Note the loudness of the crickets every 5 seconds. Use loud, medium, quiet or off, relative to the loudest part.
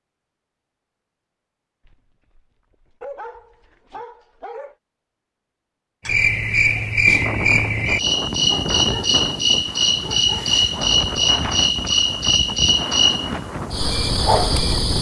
off, loud, loud.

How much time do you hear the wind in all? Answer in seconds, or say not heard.
8 s.